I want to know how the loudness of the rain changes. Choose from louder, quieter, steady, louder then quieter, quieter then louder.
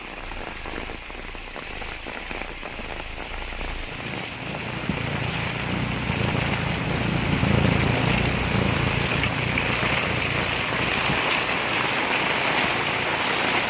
louder.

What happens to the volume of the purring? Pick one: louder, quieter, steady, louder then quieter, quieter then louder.
louder then quieter.